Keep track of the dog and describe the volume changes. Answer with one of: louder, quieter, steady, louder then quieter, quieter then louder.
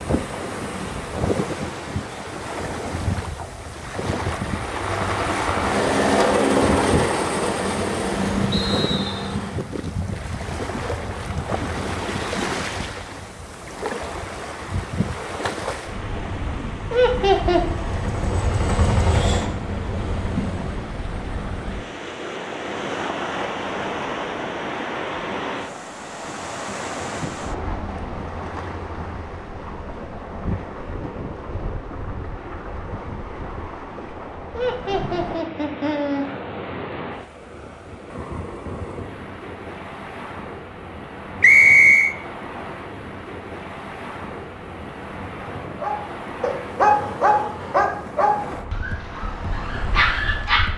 quieter then louder.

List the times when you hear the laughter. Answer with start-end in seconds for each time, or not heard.
16.9-17.8, 34.5-36.2.